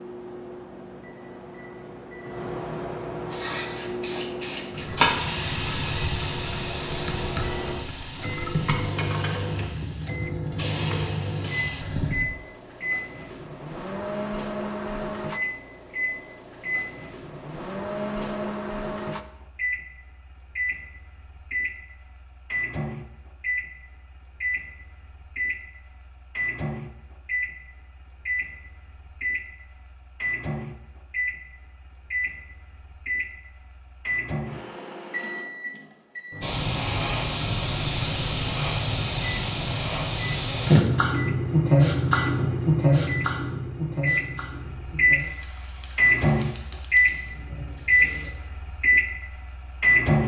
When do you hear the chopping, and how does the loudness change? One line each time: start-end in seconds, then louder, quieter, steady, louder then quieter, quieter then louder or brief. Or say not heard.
not heard.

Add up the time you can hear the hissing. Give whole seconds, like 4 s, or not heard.
21 s.